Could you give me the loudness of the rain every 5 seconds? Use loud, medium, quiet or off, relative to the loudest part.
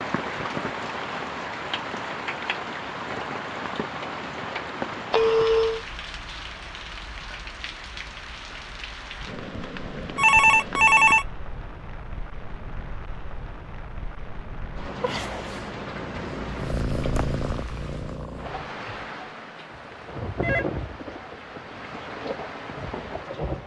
loud, medium, medium, medium, loud.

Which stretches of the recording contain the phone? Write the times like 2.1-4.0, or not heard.
5.1-5.8, 10.2-11.2, 20.0-20.6.